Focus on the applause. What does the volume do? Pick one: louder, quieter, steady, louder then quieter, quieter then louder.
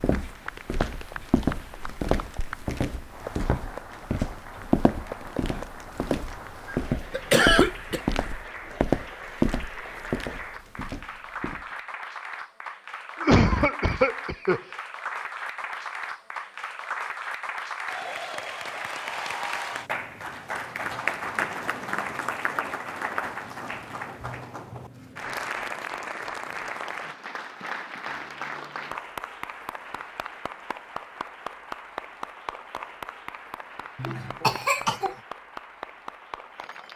louder then quieter.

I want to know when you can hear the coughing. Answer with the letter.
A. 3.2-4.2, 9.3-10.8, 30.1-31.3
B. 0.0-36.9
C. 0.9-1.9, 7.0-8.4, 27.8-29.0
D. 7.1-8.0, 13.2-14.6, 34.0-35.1
D.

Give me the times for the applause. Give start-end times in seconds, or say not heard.
0.0-36.9.